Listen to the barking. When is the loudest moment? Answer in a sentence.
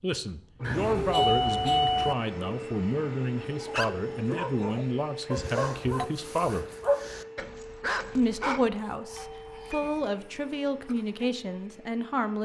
The volume of the barking peaks at 7 seconds.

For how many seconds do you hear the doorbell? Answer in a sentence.
You can hear the doorbell for 3 seconds altogether.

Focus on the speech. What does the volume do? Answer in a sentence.
The loudness of the speech stays about the same.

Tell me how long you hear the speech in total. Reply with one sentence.
The speech can be heard for 11 seconds in total.